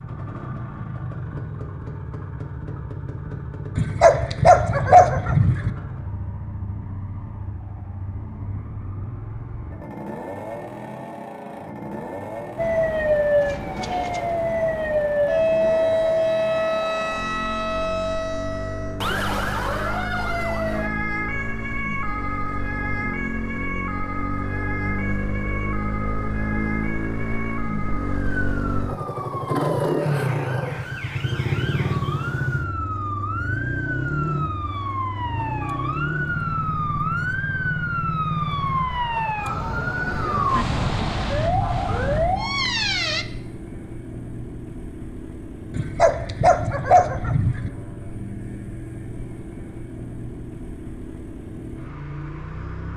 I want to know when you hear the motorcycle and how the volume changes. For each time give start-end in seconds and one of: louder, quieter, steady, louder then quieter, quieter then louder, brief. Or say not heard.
0.0-52.9 louder then quieter.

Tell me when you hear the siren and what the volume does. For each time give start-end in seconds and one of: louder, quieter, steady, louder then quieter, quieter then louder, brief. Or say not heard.
12.6-43.2 quieter then louder.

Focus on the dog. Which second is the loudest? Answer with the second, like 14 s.
5 s.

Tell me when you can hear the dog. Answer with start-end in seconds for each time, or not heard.
3.8-5.7, 45.7-47.7.